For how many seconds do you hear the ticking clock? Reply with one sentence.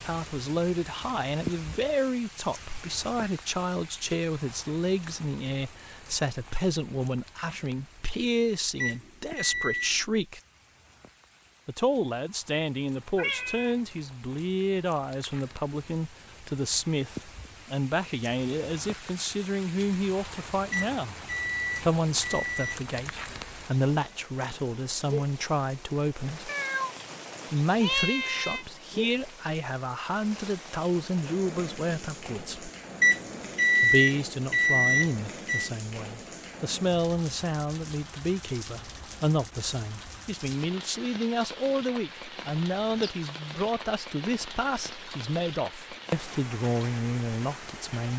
The ticking clock can't be heard in this clip.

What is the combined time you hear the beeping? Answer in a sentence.
You can hear the beeping for 6 seconds altogether.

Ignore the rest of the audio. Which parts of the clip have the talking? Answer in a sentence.
The talking can be heard from 0.0 to 10.4 s, from 11.7 to 21.1 s, from 21.8 to 26.5 s, from 27.5 to 32.7 s and from 33.8 to 48.1 s.